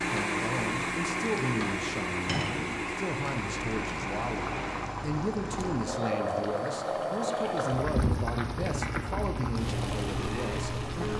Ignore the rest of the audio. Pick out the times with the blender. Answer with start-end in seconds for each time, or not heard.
0.0-5.0, 9.7-11.1.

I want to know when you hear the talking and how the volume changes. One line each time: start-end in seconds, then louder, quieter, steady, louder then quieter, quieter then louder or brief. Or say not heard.
0.0-11.1 steady.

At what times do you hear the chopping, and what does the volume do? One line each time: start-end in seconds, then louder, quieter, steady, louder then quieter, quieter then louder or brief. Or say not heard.
not heard.